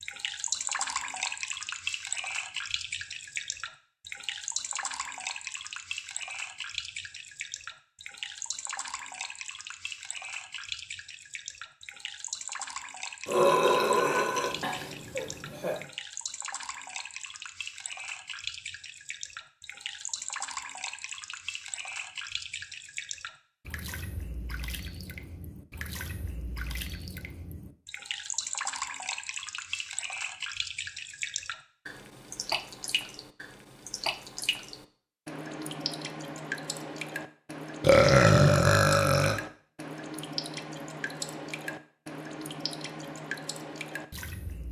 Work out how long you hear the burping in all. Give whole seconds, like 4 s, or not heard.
4 s.